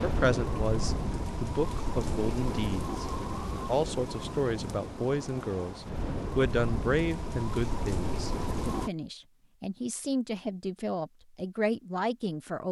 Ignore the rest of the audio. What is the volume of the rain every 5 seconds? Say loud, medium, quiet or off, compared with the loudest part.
loud, loud, off.